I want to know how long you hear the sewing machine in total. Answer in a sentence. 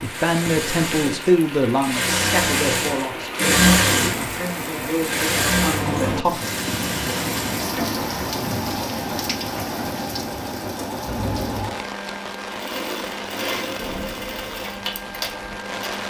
You can hear the sewing machine for 16 seconds altogether.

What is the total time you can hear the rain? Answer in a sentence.
The rain can be heard for 16 seconds in total.